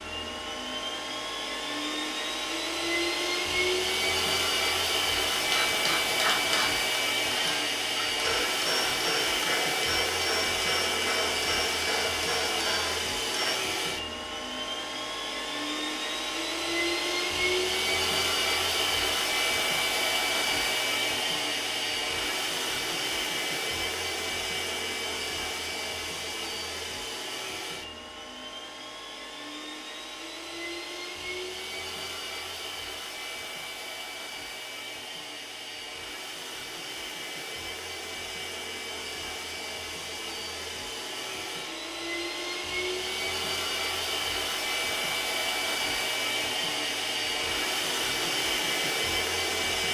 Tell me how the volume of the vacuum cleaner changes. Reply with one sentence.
The loudness of the vacuum cleaner goes down, then up.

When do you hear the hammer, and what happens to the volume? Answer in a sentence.
The hammer can be heard from 5.3 to 13.6 s, at a steady volume.